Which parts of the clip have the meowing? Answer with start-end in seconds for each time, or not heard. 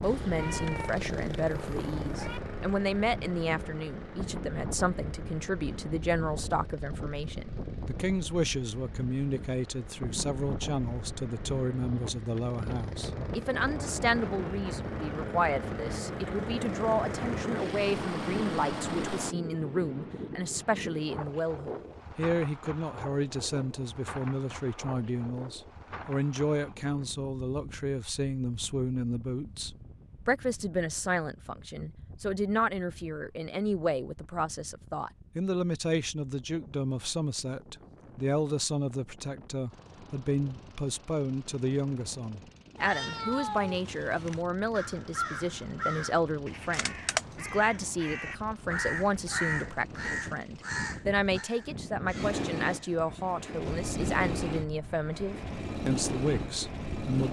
0.3-2.4, 42.8-44.5.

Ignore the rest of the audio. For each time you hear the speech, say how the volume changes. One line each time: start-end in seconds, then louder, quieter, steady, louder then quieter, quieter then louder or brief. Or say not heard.
0.0-57.2 steady.